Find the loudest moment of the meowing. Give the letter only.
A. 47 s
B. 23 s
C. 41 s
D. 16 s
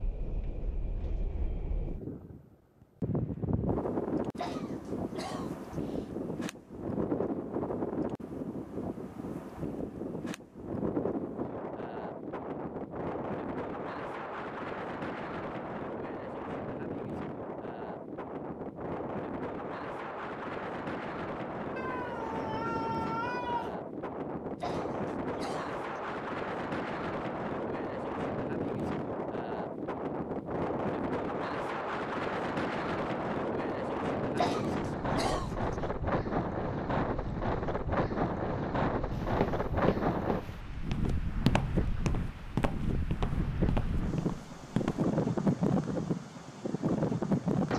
B.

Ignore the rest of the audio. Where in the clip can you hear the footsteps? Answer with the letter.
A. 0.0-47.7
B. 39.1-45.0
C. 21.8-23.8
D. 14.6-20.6
B.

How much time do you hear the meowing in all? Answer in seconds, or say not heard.
2 s.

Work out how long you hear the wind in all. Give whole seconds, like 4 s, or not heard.
48 s.